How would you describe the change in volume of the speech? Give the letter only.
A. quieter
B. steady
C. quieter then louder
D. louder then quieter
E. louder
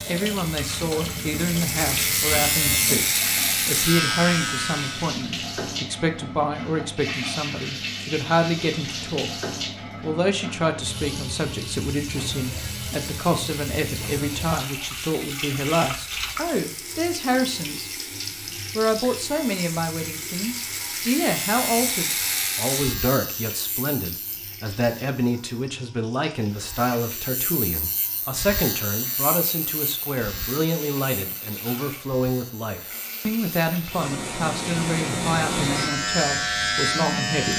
B.